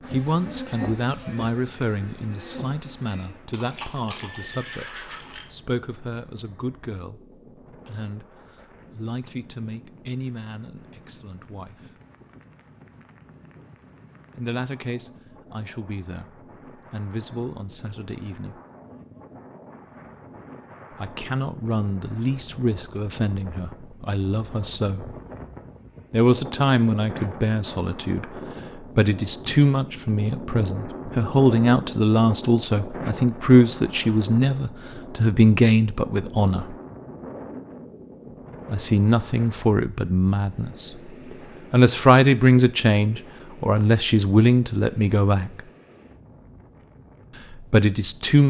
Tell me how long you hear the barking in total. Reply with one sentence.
You can't hear the barking here.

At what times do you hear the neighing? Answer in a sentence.
The neighing can be heard from 3.5 to 5.5 s.